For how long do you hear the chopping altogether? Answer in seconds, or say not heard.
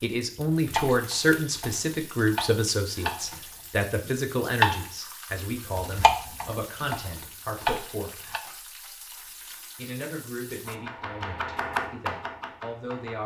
9 s.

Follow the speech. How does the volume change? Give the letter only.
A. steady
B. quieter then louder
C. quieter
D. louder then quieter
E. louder
C.